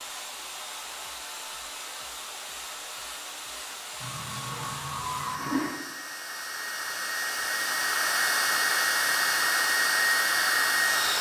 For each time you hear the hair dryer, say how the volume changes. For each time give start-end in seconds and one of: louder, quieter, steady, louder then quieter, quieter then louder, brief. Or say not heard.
0.0-11.1 louder.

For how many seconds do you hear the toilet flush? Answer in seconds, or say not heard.
2 s.